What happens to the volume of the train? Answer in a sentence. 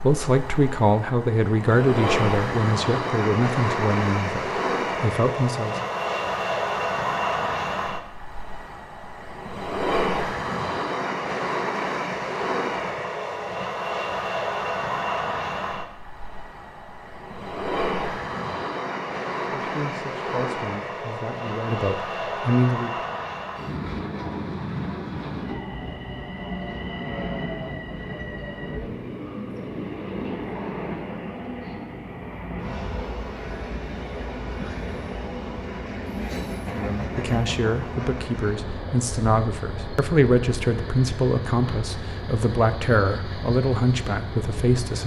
The volume of the train goes down.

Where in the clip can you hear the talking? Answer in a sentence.
The talking can be heard from 0.0 to 5.8 s, from 19.5 to 22.9 s and from 36.7 to 45.0 s.